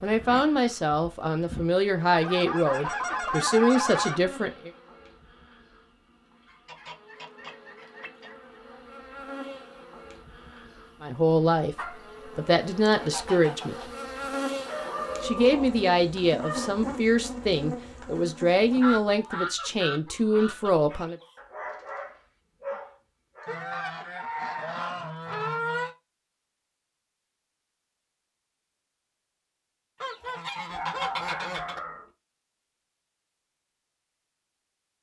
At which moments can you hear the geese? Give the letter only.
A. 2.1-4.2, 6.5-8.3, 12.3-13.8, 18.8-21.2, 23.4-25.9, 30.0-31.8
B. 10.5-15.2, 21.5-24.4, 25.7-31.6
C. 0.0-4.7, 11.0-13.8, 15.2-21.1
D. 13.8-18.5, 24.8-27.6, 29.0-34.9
A.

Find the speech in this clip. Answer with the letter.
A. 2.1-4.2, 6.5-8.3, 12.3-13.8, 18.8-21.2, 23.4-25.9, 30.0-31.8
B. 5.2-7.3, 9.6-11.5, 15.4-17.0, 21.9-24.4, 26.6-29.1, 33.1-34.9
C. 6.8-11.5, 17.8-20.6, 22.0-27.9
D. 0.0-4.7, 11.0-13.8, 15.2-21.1
D.